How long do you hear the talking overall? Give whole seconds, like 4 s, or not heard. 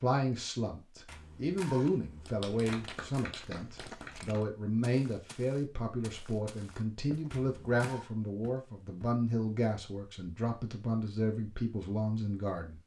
13 s.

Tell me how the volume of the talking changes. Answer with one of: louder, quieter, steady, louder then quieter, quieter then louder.
steady.